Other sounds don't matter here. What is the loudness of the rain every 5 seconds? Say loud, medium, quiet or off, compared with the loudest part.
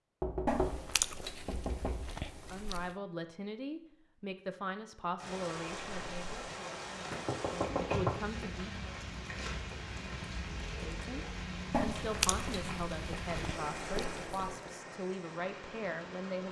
off, loud, loud, medium.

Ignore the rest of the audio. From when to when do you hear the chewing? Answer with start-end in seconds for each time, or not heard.
0.5-3.0, 11.7-14.6.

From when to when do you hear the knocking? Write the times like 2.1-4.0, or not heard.
0.2-2.1, 7.1-8.2, 13.9-14.8.